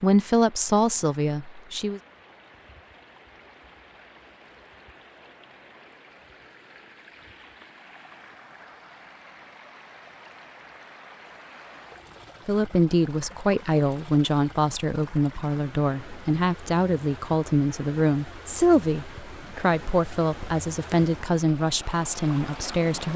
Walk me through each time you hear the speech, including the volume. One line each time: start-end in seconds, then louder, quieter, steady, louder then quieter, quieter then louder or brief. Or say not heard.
0.0-2.0 brief
12.4-23.1 steady.